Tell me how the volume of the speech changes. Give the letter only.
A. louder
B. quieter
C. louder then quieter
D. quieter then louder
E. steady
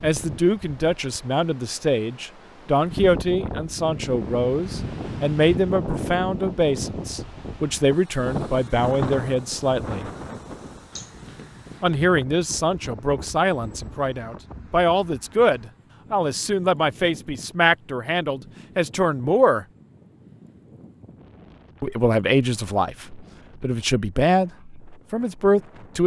E.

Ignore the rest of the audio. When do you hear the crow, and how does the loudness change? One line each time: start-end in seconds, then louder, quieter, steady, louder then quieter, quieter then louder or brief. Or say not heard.
not heard.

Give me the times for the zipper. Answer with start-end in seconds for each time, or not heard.
10.9-11.8.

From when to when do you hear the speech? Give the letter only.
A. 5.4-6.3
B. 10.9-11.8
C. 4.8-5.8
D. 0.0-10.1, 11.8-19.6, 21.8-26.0
D.